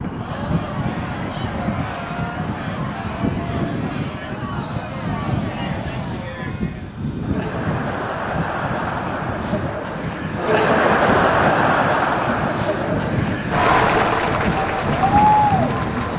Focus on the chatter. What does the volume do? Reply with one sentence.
The loudness of the chatter goes up.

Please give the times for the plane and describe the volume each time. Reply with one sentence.
The plane can be heard from 0.0 to 16.1 s, at a steady volume.